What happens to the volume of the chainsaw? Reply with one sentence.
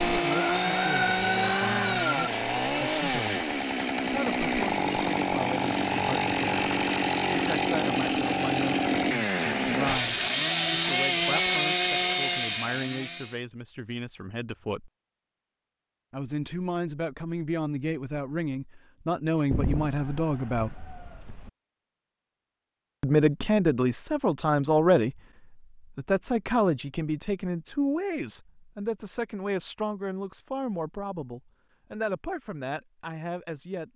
The volume of the chainsaw stays about the same.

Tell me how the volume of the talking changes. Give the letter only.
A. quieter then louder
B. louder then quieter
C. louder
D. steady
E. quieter
B.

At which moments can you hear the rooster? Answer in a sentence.
You can hear the rooster from 0.3 to 2.3 s and from 19.5 to 21.5 s.